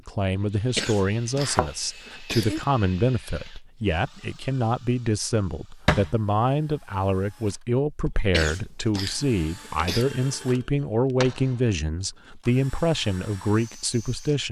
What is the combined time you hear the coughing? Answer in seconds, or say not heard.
4 s.